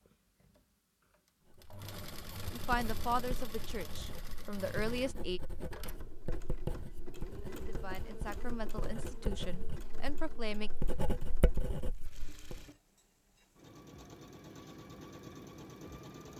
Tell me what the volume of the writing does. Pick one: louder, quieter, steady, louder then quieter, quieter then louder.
louder.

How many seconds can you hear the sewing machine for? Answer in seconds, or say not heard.
16 s.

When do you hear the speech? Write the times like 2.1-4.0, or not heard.
2.5-5.4, 7.3-10.7.